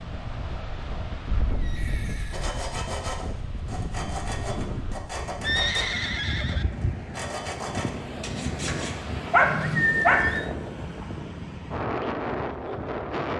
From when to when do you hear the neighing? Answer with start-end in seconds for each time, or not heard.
1.4-2.5, 5.4-6.7, 9.6-10.5.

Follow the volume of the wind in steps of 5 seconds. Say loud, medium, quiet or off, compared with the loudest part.
medium, loud, loud.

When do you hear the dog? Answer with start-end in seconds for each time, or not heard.
8.7-10.3.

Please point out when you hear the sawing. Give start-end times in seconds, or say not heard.
2.3-8.9.